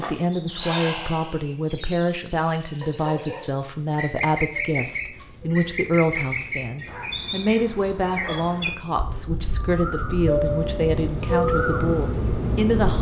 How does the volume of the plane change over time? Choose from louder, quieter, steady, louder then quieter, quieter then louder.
louder.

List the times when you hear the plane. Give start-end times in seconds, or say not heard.
4.5-12.9.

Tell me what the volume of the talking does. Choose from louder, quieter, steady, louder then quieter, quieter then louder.
steady.